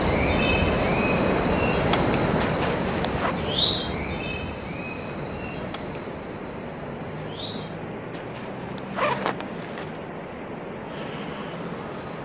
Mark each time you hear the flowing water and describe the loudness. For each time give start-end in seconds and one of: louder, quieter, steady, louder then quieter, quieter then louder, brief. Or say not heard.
0.0-12.1 quieter.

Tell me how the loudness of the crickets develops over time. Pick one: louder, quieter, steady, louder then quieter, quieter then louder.
quieter.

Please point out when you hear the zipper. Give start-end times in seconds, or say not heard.
2.4-3.4, 8.1-9.9.